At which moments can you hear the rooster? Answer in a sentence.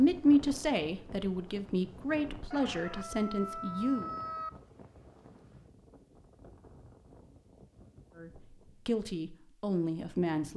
You can hear the rooster from 2.5 to 4.5 s.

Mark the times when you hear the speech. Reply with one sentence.
You can hear the speech from 0.0 to 4.1 s and from 8.2 to 10.5 s.